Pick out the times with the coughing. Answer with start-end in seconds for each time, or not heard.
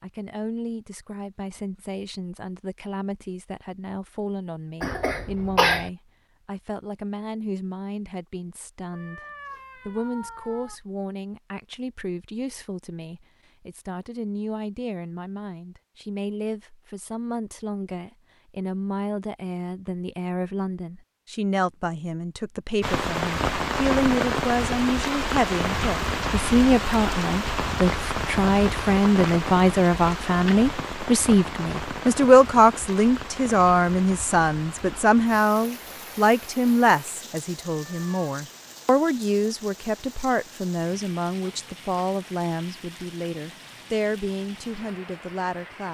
4.8-5.9.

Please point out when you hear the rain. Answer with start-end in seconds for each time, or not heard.
22.8-45.8.